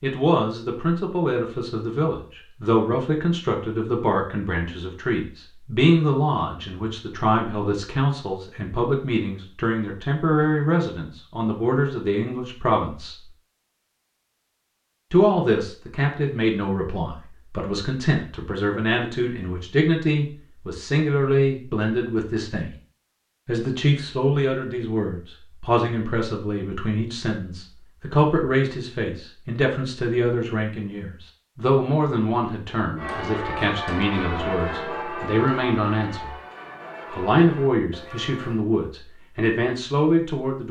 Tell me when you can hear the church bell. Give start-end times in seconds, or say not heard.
33.0-38.6.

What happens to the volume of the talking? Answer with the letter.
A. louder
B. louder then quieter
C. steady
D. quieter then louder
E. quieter
C.